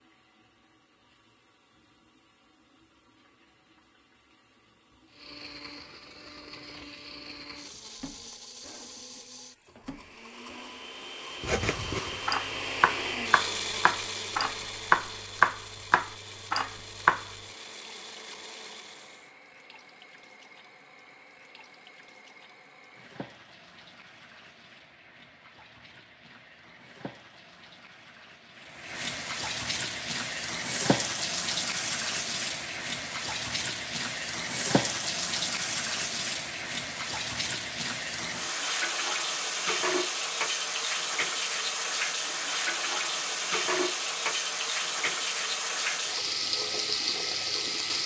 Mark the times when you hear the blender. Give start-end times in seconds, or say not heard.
5.0-19.4.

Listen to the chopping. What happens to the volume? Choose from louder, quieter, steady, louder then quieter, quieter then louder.
louder then quieter.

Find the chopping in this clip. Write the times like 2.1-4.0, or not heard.
11.4-17.2.